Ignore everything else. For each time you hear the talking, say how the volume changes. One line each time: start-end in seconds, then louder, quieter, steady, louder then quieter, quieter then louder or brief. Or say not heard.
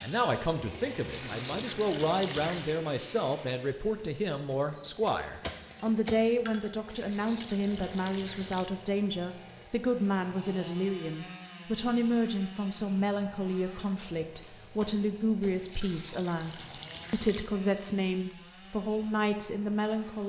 0.0-20.2 steady.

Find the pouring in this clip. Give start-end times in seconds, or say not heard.
1.1-2.8, 6.9-8.7, 15.7-17.4.